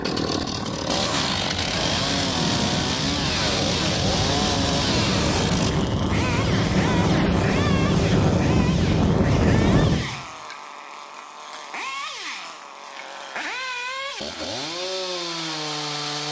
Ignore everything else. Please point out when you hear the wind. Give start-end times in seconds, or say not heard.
0.0-10.0.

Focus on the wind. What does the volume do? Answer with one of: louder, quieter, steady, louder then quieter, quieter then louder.
louder.